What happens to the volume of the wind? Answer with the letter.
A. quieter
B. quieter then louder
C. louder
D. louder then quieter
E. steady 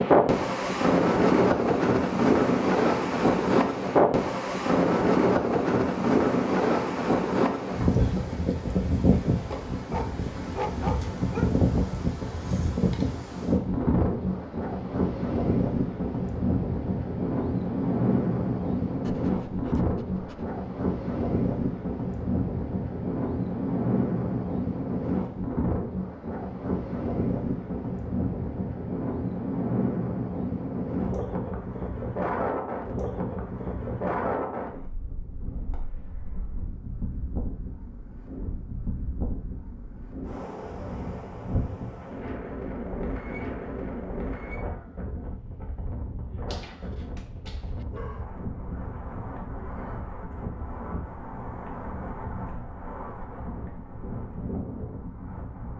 A.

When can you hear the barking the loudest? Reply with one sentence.
The loudest moment of the barking is at 11 seconds.